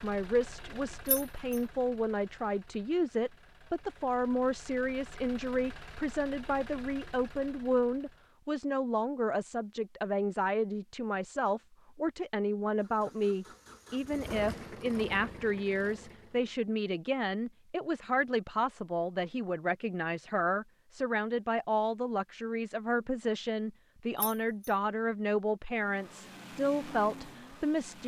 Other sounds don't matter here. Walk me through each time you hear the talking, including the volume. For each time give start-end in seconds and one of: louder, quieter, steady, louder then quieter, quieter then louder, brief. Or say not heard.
0.0-28.0 steady.